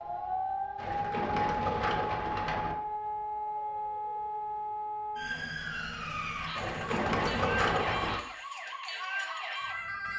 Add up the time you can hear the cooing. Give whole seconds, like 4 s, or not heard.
4 s.